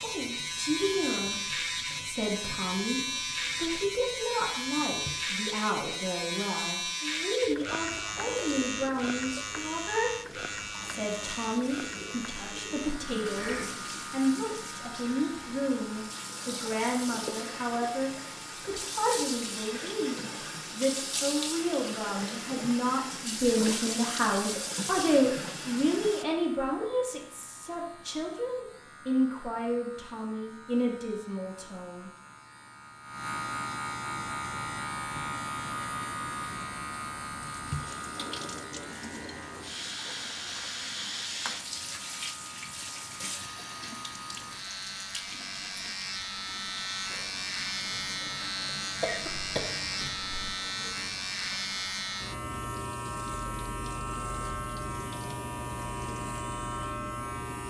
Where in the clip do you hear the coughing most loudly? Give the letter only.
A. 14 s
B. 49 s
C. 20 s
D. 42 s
B.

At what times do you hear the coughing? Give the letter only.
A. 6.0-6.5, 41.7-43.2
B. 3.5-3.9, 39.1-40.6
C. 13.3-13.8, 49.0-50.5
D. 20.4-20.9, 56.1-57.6
C.